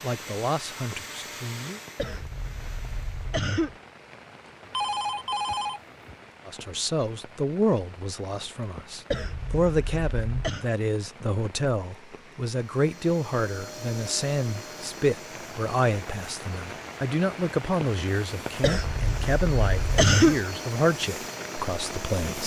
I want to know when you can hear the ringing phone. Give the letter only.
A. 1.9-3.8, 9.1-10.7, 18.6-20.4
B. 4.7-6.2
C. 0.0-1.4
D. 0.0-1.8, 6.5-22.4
B.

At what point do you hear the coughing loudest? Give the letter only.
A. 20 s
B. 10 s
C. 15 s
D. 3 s
A.